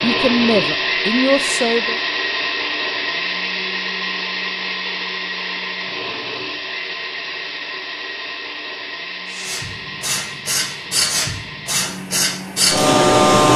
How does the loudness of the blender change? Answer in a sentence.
The loudness of the blender goes down.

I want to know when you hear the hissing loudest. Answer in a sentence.
The loudest moment of the hissing is at 13 seconds.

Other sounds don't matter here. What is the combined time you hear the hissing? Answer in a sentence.
The hissing can be heard for 4 seconds in total.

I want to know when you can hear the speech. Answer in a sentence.
The speech can be heard from 0.0 to 2.0 s.